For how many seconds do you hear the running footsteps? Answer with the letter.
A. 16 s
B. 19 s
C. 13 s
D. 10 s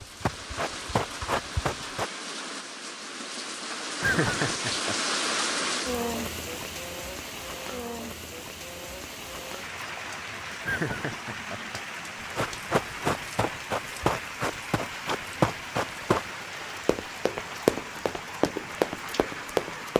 D.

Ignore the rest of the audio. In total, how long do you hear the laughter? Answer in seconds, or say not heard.
2 s.